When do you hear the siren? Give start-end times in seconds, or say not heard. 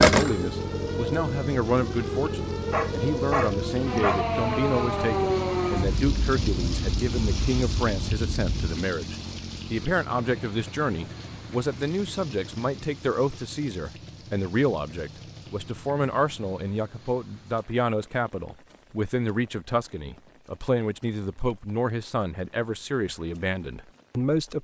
0.0-8.8.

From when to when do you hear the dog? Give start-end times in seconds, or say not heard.
2.7-4.3.